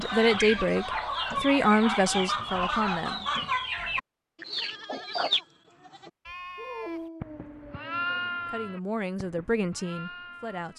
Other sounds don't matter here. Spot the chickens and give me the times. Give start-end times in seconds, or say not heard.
0.0-5.4.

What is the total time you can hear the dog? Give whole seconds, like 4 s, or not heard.
4 s.